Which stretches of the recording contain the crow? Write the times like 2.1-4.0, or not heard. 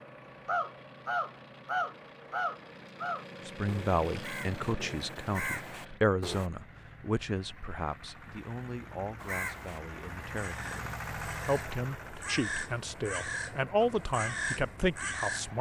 0.5-6.5, 9.2-15.5.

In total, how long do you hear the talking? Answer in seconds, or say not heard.
12 s.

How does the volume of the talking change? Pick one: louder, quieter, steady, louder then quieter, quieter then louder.
quieter then louder.